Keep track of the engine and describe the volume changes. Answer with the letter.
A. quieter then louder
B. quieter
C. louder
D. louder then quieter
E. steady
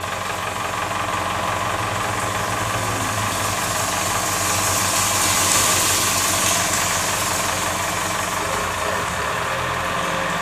E.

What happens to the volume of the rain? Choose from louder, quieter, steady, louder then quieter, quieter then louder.
louder then quieter.